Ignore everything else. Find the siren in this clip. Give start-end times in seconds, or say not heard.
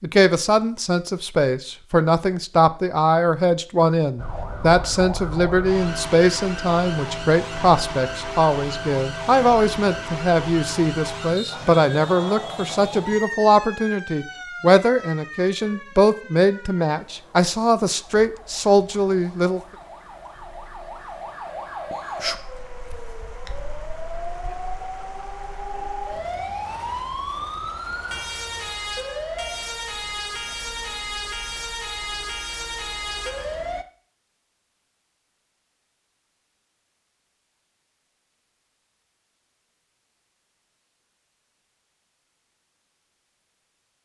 4.2-33.9.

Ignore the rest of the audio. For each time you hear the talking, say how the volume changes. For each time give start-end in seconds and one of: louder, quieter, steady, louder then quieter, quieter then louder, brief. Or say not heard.
0.0-19.6 steady.